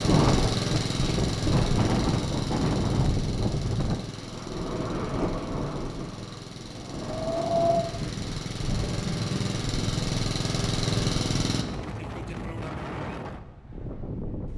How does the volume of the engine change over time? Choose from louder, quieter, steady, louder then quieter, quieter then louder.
quieter then louder.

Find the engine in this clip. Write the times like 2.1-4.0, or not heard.
0.0-11.7.